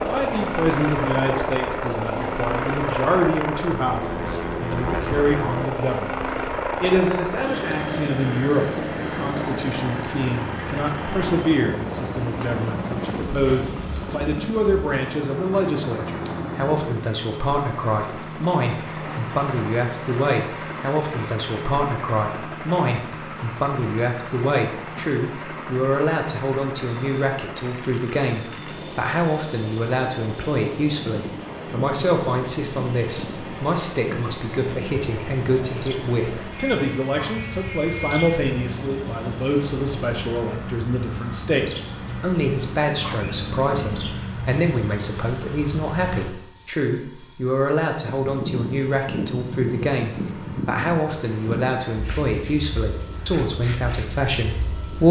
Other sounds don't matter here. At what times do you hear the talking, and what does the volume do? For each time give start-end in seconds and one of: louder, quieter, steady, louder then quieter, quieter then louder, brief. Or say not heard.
0.0-55.0 steady.